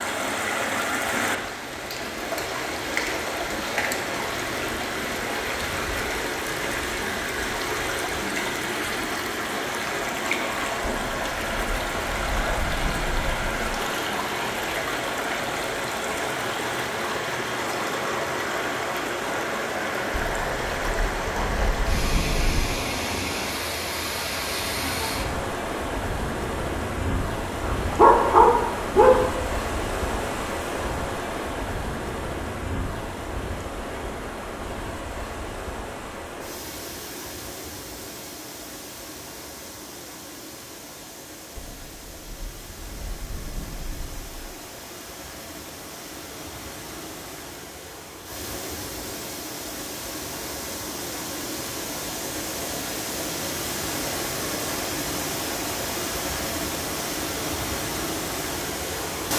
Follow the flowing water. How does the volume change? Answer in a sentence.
The loudness of the flowing water goes down, then up.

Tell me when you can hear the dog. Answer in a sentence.
You can hear the dog from 27.7 to 29.2 s.